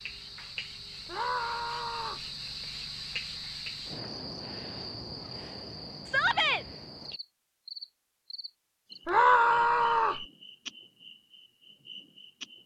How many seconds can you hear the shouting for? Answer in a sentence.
You can hear the shouting for 3 seconds altogether.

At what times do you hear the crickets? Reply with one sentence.
You can hear the crickets from 0.0 to 12.6 s.